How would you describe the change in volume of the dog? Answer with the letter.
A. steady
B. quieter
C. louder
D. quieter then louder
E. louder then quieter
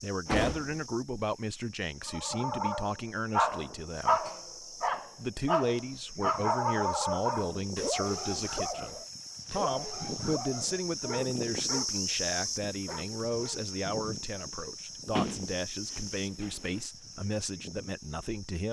B.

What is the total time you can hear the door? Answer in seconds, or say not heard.
2 s.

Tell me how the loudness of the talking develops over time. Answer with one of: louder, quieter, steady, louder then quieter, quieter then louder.
steady.